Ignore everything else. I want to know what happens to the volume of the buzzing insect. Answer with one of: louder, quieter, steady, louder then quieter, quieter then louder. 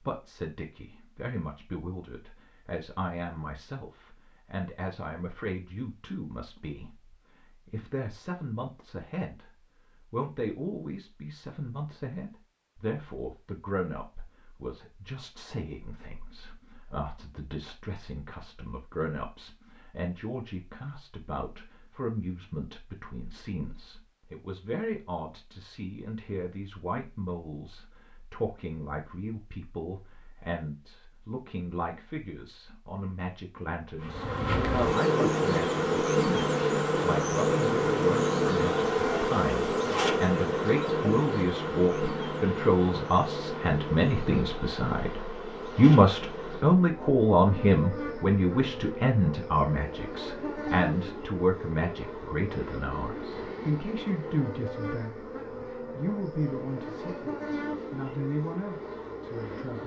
quieter.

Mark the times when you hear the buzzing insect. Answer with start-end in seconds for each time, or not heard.
34.0-59.8.